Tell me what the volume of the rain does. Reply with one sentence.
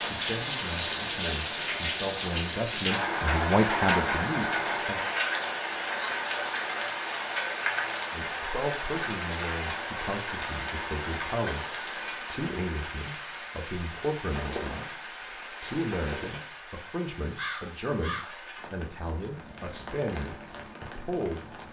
The loudness of the rain goes down.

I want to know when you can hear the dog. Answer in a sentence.
You can't hear the dog here.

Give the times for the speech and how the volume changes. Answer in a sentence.
The speech can be heard from 0.0 to 5.0 s, getting louder; and from 8.1 to 21.5 s, at a steady volume.